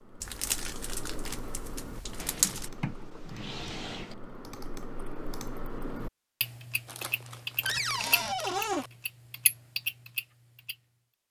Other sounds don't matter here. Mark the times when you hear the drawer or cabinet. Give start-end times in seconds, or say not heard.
2.1-4.2, 7.7-8.8.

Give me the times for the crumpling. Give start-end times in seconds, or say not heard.
0.2-2.7, 6.8-8.9.